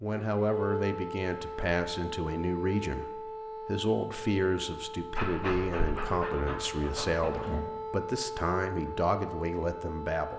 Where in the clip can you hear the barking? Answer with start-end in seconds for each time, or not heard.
5.2-7.7.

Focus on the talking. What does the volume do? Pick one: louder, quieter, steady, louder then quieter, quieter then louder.
steady.